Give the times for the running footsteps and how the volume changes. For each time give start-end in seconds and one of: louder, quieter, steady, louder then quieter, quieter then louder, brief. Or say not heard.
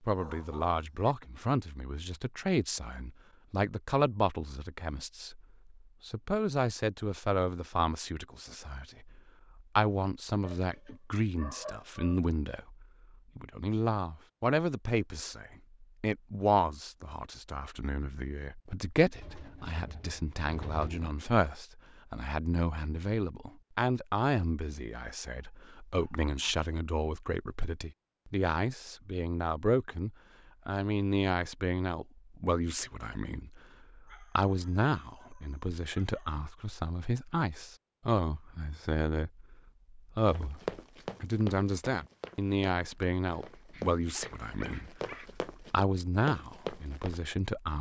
40.2-47.2 quieter then louder.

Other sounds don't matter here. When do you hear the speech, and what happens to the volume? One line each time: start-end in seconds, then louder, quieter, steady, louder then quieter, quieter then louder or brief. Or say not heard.
0.0-47.7 steady.